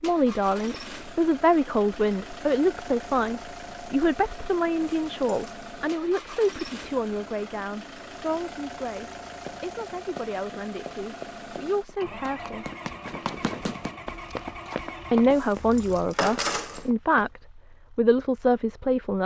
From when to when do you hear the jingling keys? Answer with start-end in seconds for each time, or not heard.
4.8-5.7, 15.3-16.9.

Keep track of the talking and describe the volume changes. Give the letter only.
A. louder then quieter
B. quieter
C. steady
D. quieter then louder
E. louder
D.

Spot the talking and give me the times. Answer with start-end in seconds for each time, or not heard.
0.0-12.7, 15.1-19.2.